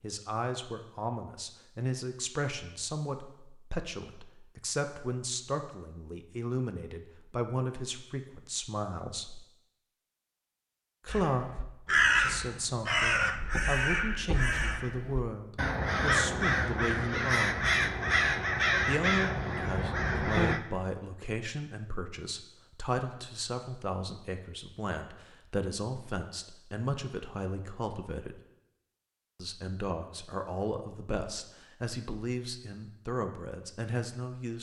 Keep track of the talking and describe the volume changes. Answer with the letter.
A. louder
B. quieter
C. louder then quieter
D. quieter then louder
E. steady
E.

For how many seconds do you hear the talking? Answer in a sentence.
The talking can be heard for 31 seconds in total.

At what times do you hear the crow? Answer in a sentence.
You can hear the crow from 11.1 to 20.6 s.